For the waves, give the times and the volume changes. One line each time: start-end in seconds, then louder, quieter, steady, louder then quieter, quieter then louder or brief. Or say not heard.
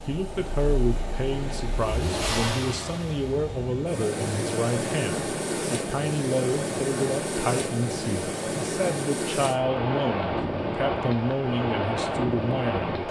0.0-13.0 louder.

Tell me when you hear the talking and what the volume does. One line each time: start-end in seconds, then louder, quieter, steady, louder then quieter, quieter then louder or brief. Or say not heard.
0.0-13.0 steady.